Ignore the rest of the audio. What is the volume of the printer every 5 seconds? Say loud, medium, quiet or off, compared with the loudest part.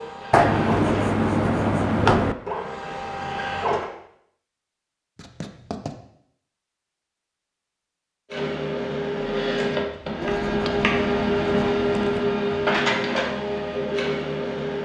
medium, loud, loud.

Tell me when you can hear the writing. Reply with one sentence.
You can hear the writing from 0.3 to 2.4 s, from 5.2 to 6.0 s and from 10.2 to 12.2 s.